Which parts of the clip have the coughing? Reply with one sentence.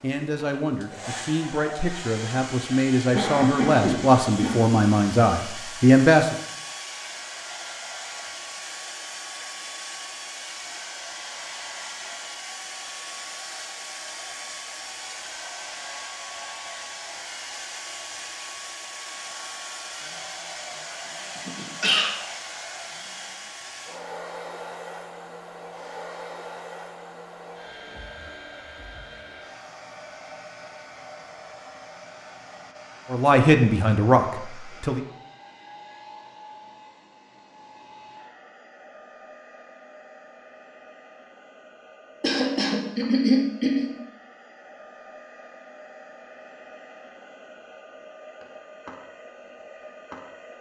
You can hear the coughing from 3.1 to 4.6 s, from 21.4 to 22.1 s and from 42.2 to 43.9 s.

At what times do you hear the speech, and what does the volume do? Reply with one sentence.
You can hear the speech from 0.0 to 6.3 s, getting louder; and briefly from 33.1 to 35.0 s.